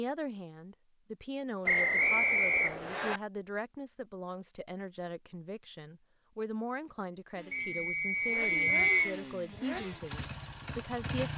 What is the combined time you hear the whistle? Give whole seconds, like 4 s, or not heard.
3 s.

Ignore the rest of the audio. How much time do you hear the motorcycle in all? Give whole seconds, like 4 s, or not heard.
4 s.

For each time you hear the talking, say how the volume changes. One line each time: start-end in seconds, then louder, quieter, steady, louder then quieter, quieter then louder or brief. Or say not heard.
0.0-11.3 steady.